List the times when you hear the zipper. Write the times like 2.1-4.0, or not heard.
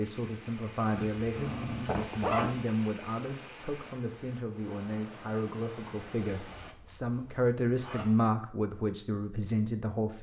1.9-2.6, 6.6-8.1.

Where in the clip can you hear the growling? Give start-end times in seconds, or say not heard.
0.9-2.0.